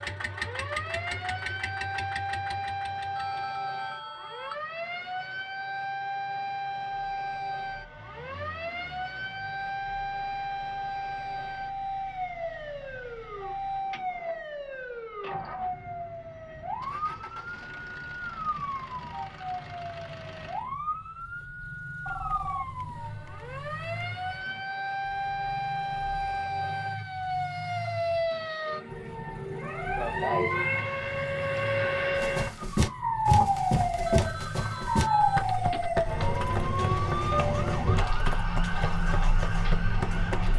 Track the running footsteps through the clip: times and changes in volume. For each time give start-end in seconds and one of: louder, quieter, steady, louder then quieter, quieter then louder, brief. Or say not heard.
32.1-40.4 quieter.